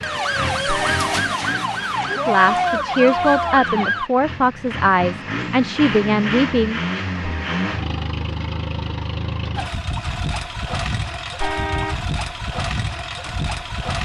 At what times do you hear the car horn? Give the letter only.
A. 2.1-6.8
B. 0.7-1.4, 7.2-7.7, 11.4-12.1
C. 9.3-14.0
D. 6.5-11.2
B.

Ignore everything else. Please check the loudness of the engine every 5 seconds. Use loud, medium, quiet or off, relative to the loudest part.
medium, loud, loud.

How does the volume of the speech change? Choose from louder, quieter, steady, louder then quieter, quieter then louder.
steady.